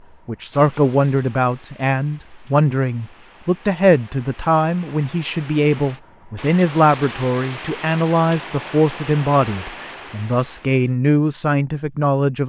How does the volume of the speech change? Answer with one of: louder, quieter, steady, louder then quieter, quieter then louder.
steady.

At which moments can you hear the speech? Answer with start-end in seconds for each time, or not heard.
0.2-12.4.